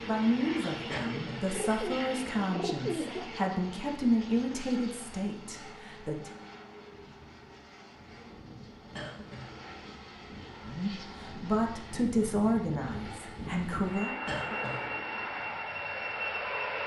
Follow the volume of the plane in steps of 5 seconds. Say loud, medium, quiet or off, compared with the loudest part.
medium, quiet, medium, loud.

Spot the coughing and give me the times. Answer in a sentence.
The coughing can be heard from 0.9 to 1.5 s, from 8.9 to 9.6 s and from 14.2 to 14.8 s.